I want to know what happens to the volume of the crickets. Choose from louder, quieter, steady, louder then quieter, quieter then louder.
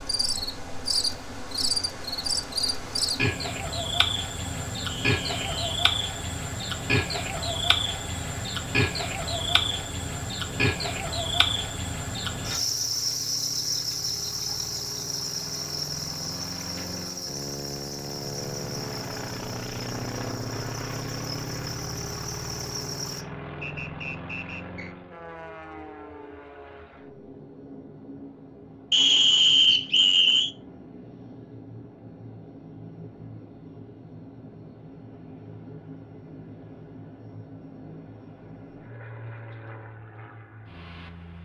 quieter.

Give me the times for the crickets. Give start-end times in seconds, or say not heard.
0.0-23.2.